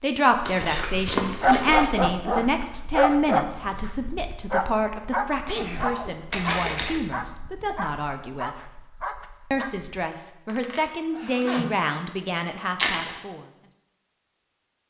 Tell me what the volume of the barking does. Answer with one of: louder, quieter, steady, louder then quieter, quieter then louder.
quieter.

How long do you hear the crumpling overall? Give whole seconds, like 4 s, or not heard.
3 s.